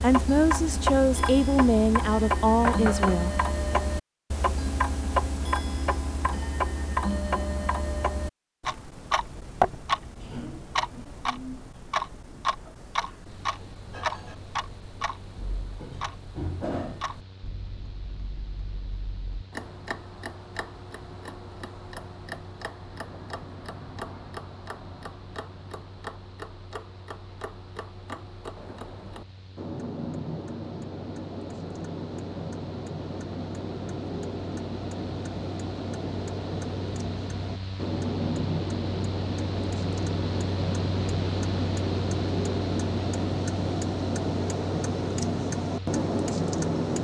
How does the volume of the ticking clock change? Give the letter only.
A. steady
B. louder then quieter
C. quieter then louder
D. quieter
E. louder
C.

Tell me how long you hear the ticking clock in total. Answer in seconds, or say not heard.
47 s.